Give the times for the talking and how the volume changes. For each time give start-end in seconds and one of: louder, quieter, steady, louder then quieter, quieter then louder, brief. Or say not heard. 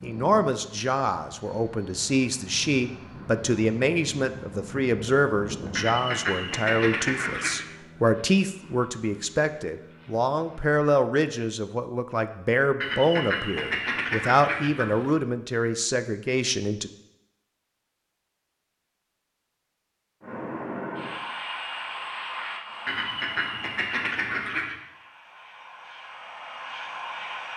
0.0-16.9 steady.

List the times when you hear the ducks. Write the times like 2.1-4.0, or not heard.
5.8-7.7, 12.8-15.2, 22.9-24.8.